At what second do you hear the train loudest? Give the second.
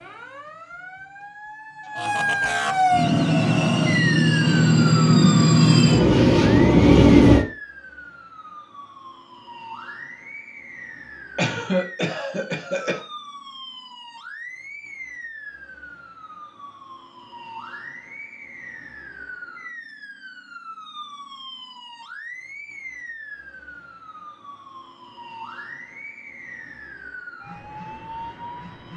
7 s.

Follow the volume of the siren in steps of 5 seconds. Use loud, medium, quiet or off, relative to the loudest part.
loud, medium, quiet, quiet, quiet, quiet.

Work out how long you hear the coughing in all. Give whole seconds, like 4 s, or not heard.
2 s.